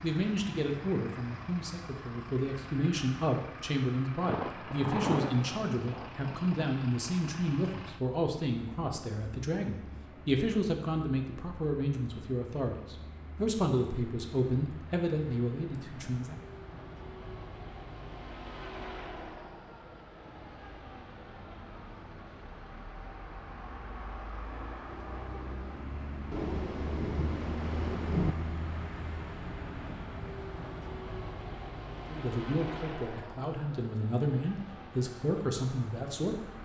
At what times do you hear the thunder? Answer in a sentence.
The thunder can be heard from 4.2 to 6.7 s and from 26.3 to 28.4 s.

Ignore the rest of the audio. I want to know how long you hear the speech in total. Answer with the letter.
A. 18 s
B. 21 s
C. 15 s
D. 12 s
B.